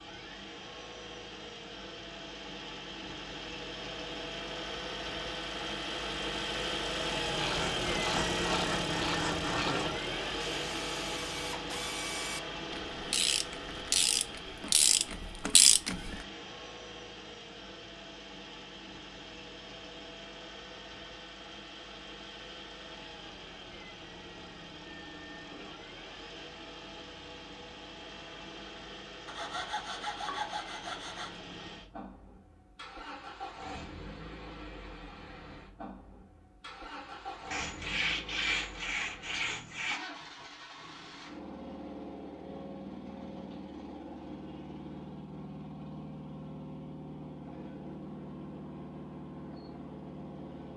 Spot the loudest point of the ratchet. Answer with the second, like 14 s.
16 s.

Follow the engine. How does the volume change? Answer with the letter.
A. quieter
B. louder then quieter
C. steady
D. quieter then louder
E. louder
A.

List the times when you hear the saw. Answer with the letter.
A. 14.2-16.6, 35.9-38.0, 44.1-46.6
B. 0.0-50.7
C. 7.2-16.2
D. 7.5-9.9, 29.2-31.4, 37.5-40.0
D.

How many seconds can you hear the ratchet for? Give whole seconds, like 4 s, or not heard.
9 s.